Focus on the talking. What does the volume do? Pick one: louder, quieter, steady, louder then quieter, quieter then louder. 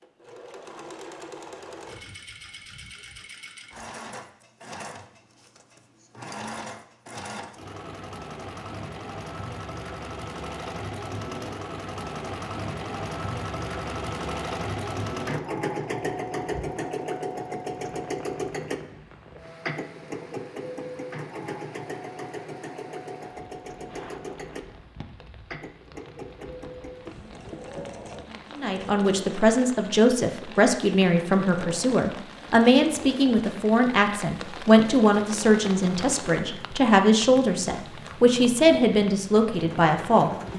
steady.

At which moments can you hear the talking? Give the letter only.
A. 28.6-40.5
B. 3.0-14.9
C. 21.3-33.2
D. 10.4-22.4
A.